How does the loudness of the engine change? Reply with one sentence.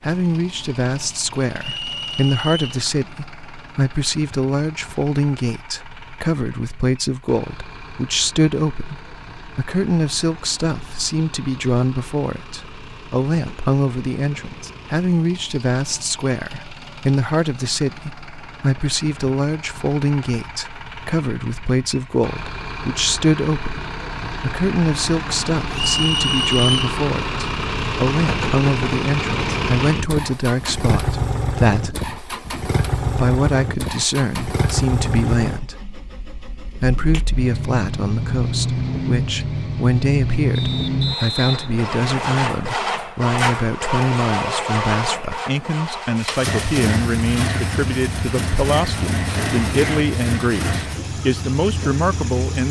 The volume of the engine goes up.